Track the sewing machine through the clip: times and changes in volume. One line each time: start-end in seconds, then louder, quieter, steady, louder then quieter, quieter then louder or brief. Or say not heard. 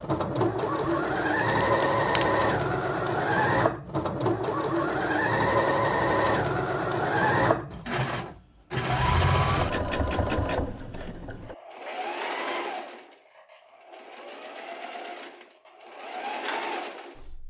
0.0-17.4 quieter.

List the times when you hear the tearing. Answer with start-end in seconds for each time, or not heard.
0.8-2.2.